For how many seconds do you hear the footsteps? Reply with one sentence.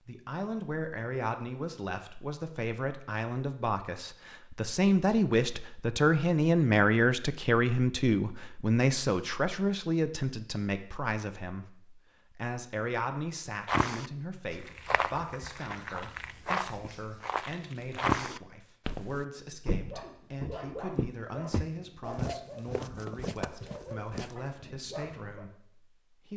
The footsteps can be heard for 11 seconds in total.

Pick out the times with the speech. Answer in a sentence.
You can hear the speech from 0.0 to 26.3 s.